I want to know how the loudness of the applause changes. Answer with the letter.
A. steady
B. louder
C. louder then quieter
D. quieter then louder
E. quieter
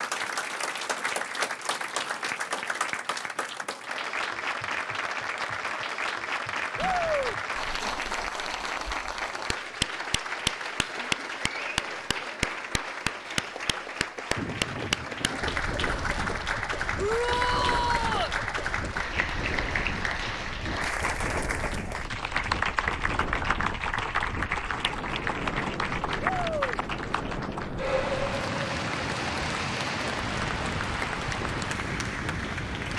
A.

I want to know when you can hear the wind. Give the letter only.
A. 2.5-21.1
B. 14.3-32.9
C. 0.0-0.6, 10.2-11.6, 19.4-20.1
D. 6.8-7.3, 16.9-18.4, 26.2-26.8
B.